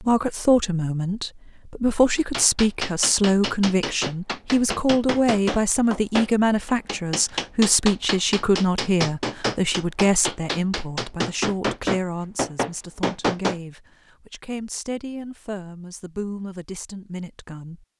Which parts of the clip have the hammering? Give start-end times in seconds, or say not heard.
2.1-13.6.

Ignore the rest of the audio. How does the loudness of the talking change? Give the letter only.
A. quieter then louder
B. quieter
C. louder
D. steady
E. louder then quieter
B.